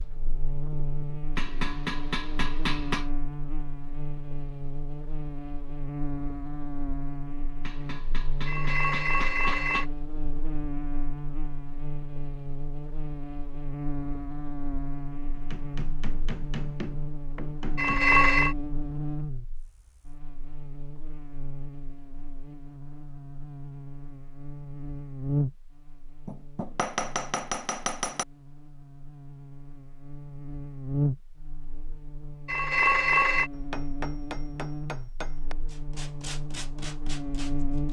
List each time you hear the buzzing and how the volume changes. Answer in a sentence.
The buzzing can be heard from 0.0 to 37.8 s, at a steady volume.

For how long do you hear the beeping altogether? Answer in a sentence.
The beeping can be heard for 3 seconds in total.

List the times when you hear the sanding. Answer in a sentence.
The sanding can be heard from 35.6 to 37.8 s.